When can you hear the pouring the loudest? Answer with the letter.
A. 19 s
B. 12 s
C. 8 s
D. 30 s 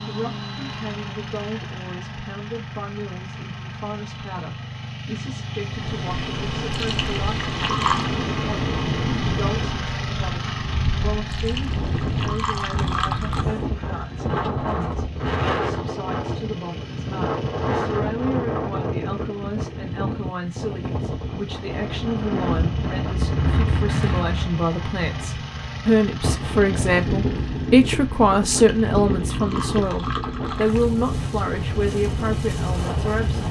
C.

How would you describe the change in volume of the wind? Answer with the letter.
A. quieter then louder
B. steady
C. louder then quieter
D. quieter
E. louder
B.